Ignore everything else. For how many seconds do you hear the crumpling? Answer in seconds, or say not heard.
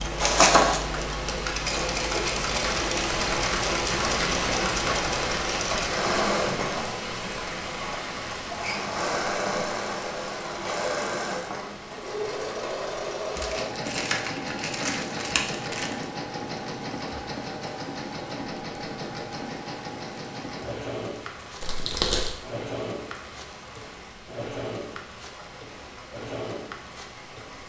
4 s.